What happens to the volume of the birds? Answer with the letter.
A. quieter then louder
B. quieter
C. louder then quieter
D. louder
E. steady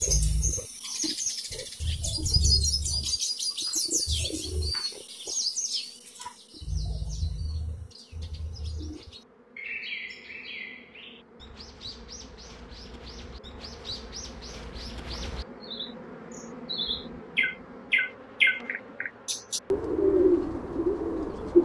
A.